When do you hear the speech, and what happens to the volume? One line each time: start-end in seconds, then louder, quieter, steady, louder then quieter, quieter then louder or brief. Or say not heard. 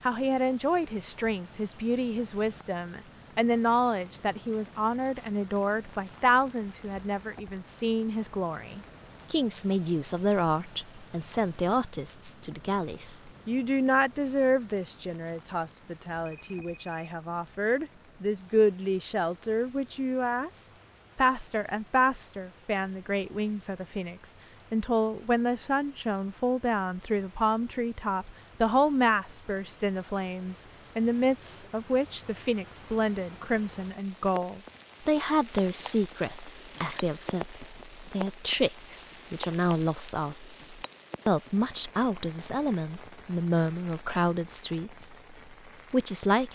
0.0-46.5 steady.